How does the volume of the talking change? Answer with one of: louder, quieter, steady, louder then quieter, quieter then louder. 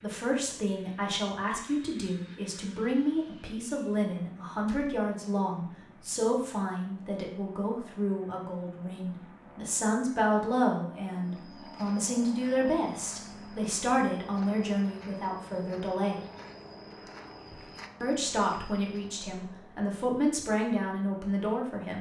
steady.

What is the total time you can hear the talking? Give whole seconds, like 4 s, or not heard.
20 s.